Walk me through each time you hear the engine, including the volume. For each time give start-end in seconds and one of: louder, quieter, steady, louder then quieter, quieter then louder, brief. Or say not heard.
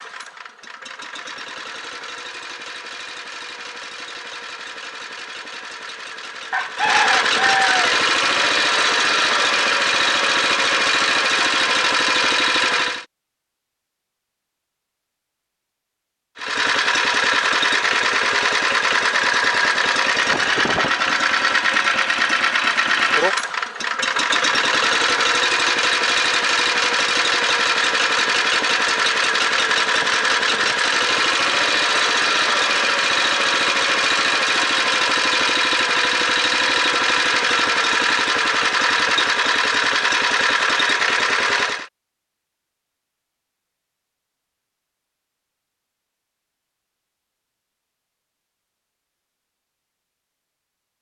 0.0-13.1 louder
16.4-41.9 steady.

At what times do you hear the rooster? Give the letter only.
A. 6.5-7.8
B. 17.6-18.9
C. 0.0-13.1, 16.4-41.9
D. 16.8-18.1
A.